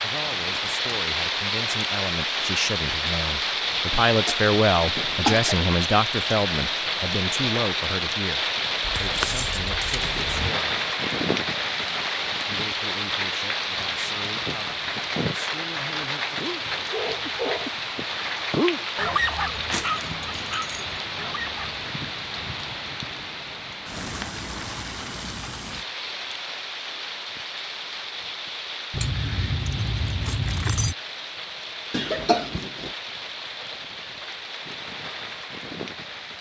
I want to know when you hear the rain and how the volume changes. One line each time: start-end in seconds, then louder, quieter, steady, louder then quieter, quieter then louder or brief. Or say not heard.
0.0-36.3 quieter.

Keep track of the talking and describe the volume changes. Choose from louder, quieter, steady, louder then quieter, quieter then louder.
louder then quieter.